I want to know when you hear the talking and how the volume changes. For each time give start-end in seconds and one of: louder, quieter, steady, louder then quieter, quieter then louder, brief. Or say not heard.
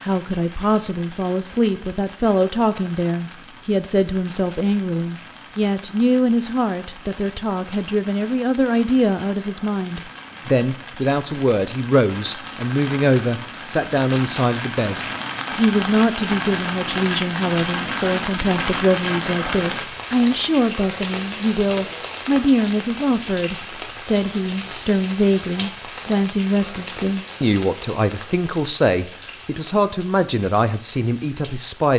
0.0-31.9 steady.